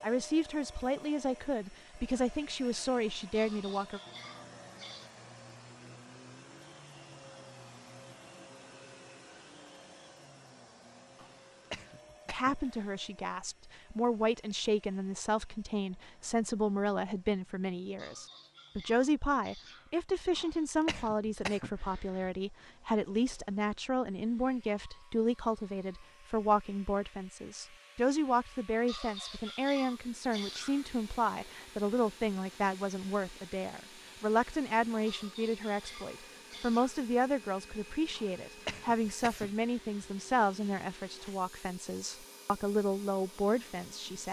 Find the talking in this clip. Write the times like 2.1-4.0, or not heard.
0.0-4.0, 12.3-44.2.